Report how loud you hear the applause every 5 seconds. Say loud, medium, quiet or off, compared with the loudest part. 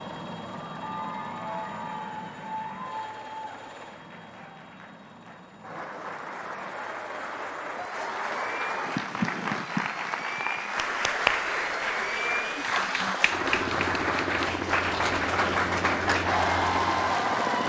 quiet, medium, loud, loud.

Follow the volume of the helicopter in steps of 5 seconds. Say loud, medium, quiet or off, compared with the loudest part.
medium, quiet, loud, loud.